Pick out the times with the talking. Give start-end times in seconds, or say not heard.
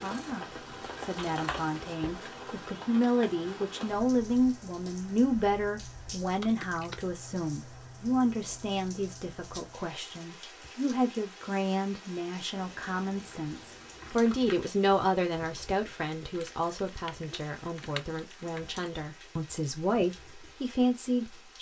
0.0-21.5.